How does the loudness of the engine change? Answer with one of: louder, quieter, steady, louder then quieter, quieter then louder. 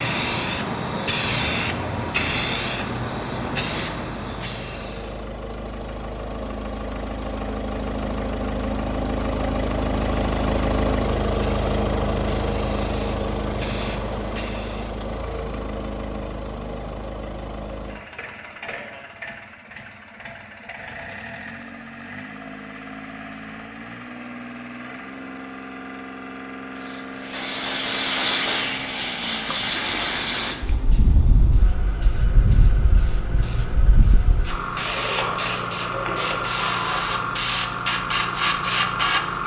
quieter.